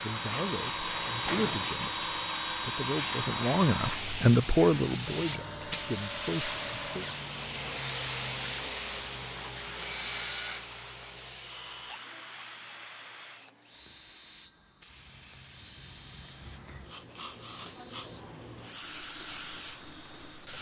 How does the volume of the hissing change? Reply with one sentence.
The volume of the hissing goes down, then up.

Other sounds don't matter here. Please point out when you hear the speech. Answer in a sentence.
The speech can be heard from 0.0 to 7.0 s.